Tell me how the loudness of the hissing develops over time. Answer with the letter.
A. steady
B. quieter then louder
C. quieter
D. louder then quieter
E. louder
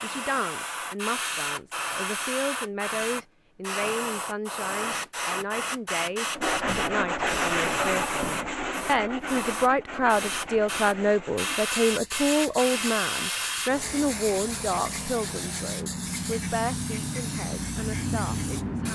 A.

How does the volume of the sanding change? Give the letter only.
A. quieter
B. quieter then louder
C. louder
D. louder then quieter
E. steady
A.